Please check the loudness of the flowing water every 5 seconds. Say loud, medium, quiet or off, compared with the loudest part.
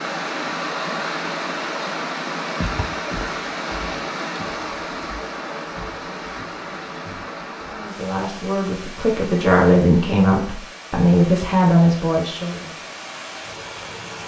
loud, medium, medium.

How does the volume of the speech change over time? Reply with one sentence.
The volume of the speech goes up.